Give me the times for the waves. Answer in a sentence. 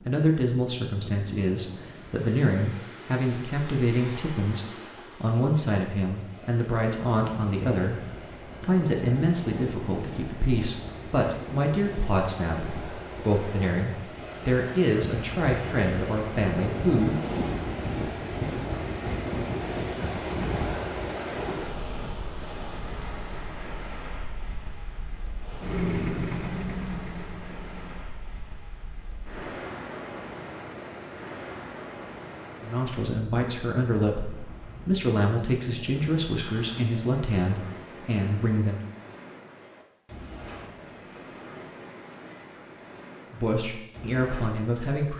The waves can be heard from 0.0 to 45.1 s.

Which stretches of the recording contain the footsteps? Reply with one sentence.
You can't hear the footsteps here.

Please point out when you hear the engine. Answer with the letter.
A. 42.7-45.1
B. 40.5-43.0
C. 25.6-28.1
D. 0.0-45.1
C.